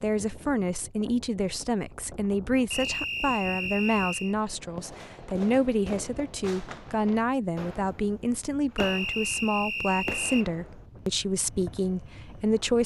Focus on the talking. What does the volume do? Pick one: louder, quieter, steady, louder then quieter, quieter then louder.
steady.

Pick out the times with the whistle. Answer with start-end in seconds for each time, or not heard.
2.7-4.3, 8.8-10.4.